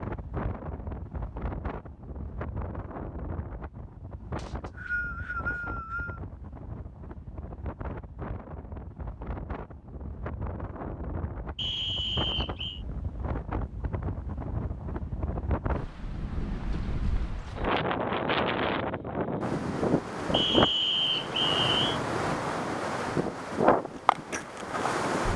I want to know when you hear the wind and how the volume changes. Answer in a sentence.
You can hear the wind from 0.0 to 25.3 s, getting louder.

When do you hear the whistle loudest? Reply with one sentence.
The loudest moment of the whistle is at 21 seconds.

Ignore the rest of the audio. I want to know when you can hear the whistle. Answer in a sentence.
You can hear the whistle from 4.3 to 6.2 s, from 11.6 to 12.8 s and from 20.3 to 22.0 s.